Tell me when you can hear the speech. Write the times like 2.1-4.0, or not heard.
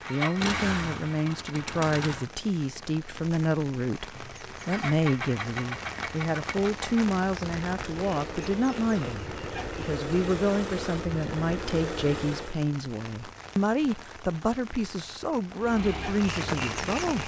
0.1-17.2.